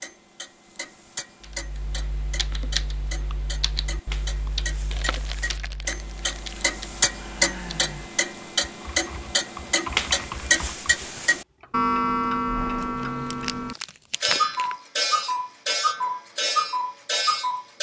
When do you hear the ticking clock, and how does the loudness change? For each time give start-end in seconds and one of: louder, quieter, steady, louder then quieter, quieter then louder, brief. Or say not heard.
0.0-17.7 louder.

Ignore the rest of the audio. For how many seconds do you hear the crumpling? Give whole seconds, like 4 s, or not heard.
4 s.